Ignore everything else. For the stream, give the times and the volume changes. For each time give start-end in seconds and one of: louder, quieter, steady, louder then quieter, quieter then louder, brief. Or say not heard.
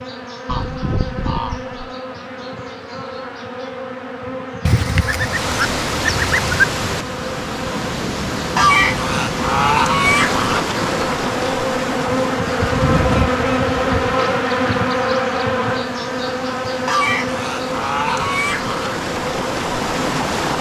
5.2-20.5 quieter then louder.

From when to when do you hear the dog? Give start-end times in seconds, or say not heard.
not heard.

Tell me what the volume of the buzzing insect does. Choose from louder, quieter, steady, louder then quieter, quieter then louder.
louder then quieter.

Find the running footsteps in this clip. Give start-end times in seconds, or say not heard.
not heard.